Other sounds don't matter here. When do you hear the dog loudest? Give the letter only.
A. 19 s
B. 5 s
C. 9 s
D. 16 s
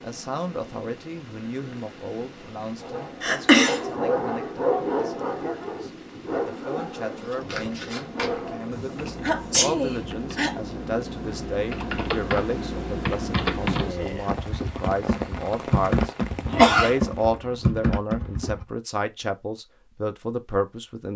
B.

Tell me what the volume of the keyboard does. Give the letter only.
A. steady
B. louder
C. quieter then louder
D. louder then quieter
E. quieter
B.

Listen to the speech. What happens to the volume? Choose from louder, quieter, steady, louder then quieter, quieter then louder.
louder.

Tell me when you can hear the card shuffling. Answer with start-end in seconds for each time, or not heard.
7.2-8.4.